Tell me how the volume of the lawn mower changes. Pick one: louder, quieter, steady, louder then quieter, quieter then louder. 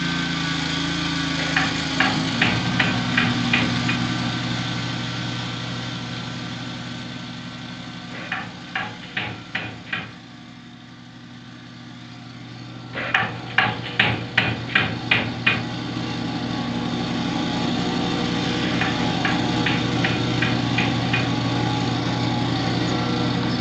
quieter then louder.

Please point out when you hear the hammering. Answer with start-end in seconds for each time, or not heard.
1.4-3.8, 8.1-10.1, 12.9-15.7, 18.6-21.4.